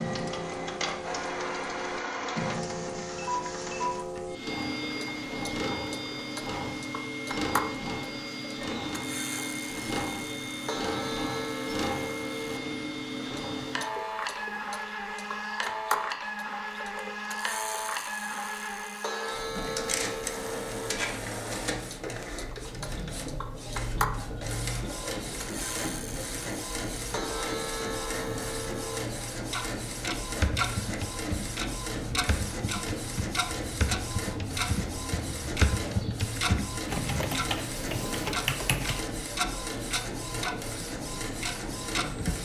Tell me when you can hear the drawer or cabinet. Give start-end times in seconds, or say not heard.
not heard.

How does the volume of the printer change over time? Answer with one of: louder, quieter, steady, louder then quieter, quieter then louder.
steady.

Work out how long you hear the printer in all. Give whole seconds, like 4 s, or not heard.
42 s.